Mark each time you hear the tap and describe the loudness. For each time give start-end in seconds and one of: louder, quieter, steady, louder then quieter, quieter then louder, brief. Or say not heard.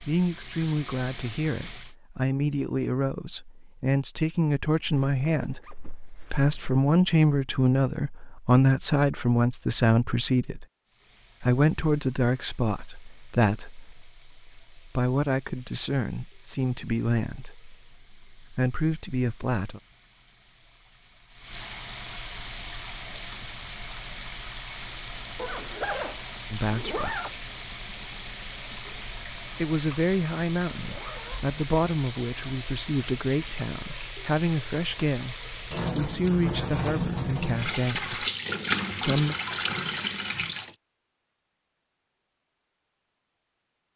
0.0-1.9 brief
10.8-40.8 louder.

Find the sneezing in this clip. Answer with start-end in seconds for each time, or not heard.
not heard.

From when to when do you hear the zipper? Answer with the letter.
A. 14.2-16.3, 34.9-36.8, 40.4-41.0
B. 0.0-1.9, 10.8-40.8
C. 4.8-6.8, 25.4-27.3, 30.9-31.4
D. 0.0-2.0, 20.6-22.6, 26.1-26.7
C.